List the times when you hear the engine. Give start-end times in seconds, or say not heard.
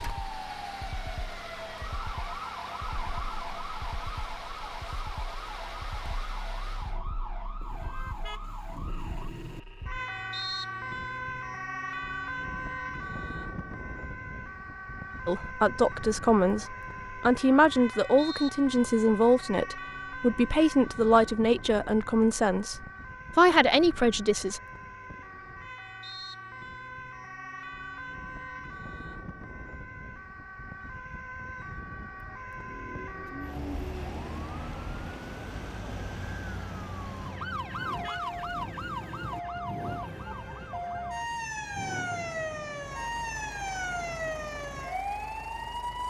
0.0-7.0, 32.5-46.0.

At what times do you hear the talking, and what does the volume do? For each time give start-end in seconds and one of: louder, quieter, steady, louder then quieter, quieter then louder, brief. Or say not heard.
15.2-24.6 steady.